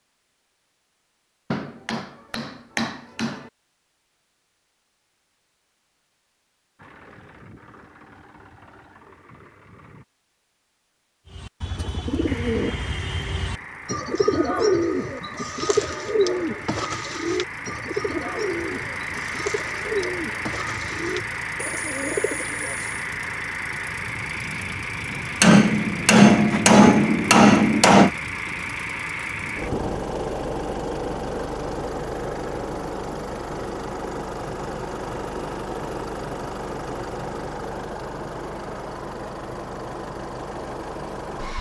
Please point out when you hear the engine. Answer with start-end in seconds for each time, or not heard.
6.8-10.1, 12.2-41.5.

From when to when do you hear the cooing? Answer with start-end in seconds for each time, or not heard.
11.2-23.1.